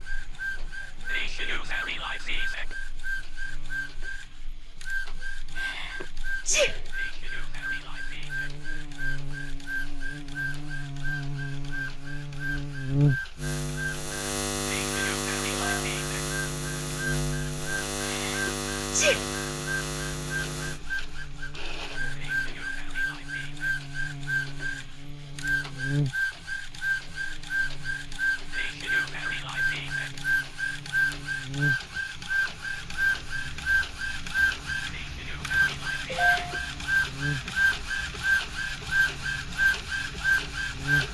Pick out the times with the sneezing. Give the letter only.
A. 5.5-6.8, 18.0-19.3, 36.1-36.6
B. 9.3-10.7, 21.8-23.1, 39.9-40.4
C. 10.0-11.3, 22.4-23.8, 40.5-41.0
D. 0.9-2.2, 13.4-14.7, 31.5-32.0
A.